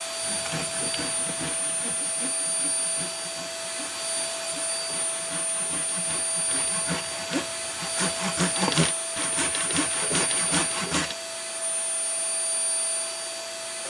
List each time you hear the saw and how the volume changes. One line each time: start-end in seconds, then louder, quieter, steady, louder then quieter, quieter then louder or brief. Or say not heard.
0.2-11.2 quieter then louder.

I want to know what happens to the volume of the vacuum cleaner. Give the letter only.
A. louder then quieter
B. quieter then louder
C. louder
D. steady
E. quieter
D.